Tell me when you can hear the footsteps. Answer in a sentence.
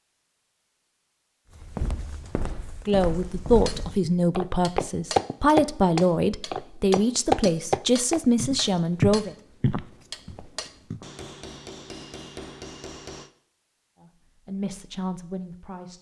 You can hear the footsteps from 1.6 to 11.1 s.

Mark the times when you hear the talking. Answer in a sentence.
You can hear the talking from 2.9 to 9.3 s and from 13.9 to 15.9 s.